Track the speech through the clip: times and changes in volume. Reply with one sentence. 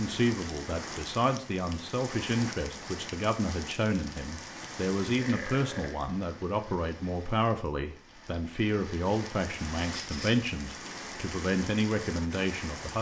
You can hear the speech from 0.0 to 12.9 s, at a steady volume.